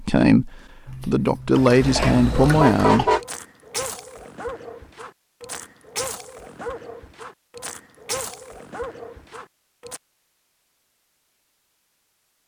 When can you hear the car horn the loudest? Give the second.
3 s.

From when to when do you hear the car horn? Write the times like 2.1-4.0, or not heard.
1.8-3.2.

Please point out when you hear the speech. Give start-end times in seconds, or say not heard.
0.0-3.0.